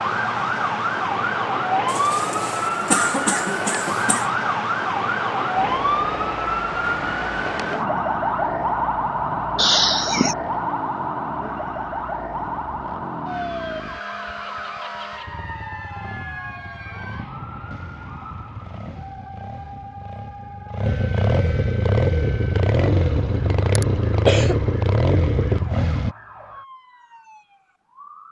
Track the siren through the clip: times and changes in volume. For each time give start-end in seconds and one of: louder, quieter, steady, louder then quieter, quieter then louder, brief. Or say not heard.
0.0-28.2 quieter.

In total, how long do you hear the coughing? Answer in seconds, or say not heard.
4 s.